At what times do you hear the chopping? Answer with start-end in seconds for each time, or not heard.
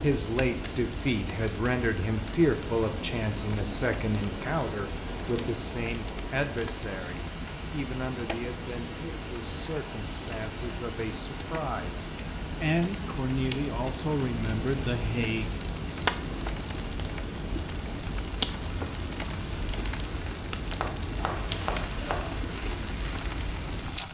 20.8-22.4.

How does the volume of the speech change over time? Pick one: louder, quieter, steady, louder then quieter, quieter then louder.
quieter then louder.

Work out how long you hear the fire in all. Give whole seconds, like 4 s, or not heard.
24 s.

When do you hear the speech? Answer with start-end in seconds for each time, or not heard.
0.0-15.5.